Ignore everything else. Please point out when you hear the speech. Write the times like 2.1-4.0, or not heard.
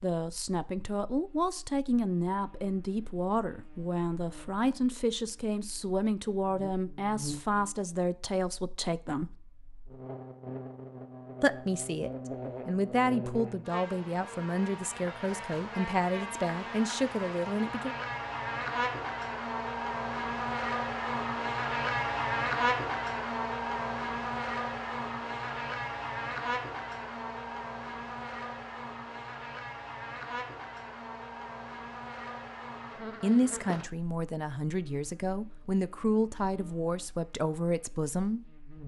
0.0-9.3, 11.4-17.9, 33.2-38.4.